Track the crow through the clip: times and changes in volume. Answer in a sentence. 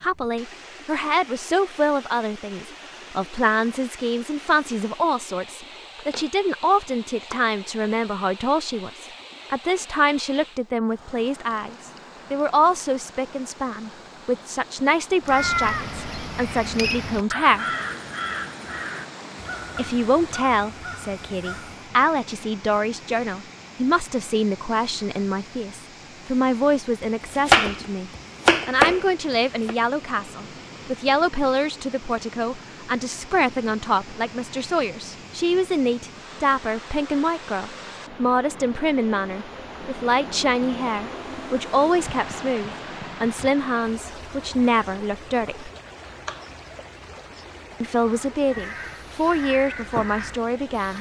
You can hear the crow from 15.2 to 21.9 s, getting quieter; and briefly from 48.0 to 50.9 s.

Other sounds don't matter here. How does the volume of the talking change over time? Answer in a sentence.
The volume of the talking stays about the same.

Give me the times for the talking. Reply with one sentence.
You can hear the talking from 0.0 to 17.6 s, from 19.8 to 45.7 s and from 47.8 to 50.9 s.